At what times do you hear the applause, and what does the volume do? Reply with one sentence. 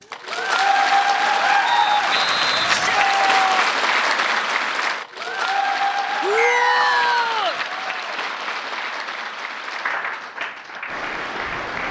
You can hear the applause from 0.1 to 11.8 s, getting quieter.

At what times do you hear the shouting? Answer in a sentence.
You can hear the shouting from 2.6 to 3.7 s and from 6.2 to 7.6 s.